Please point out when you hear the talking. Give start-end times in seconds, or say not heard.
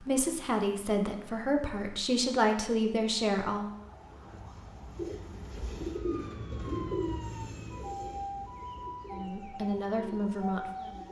0.0-3.7, 9.1-11.0.